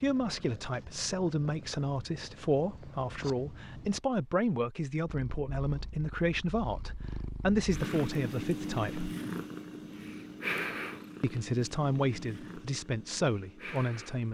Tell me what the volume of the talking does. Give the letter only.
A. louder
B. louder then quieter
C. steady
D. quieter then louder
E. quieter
C.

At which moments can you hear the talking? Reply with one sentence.
The talking can be heard from 0.0 to 9.2 s and from 11.2 to 14.2 s.